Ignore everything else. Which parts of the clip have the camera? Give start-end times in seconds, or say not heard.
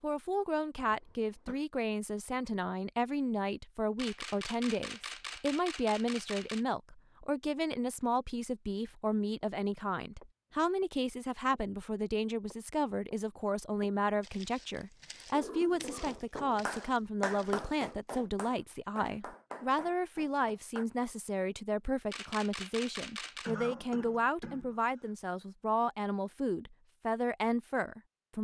4.0-6.7, 22.1-23.6.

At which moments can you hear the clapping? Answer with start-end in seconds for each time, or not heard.
15.8-20.9.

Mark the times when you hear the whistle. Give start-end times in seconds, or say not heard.
not heard.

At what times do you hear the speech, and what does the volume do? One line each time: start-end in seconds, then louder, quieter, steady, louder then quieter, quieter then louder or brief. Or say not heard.
0.0-28.3 steady.